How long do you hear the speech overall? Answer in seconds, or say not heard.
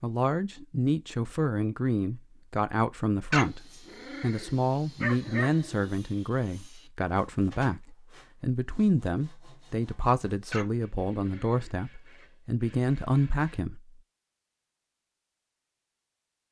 14 s.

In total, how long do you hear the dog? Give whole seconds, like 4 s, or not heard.
4 s.